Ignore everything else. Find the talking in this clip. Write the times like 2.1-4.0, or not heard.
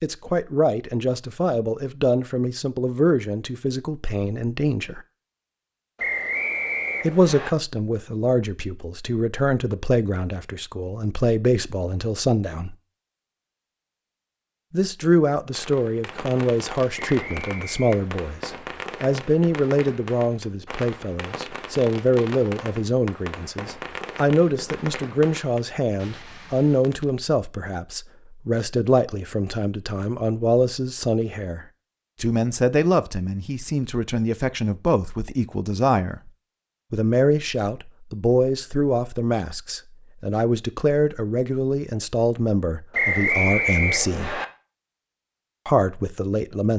0.0-5.0, 7.0-12.8, 14.7-36.3, 36.9-44.4, 45.6-46.7.